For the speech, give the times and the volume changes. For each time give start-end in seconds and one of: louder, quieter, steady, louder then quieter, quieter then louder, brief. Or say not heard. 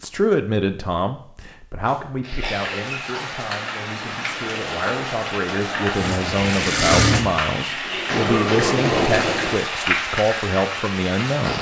0.0-11.5 quieter then louder.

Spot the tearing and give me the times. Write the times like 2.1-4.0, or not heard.
2.2-3.0, 6.2-6.8.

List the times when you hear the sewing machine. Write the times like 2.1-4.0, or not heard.
6.0-9.6.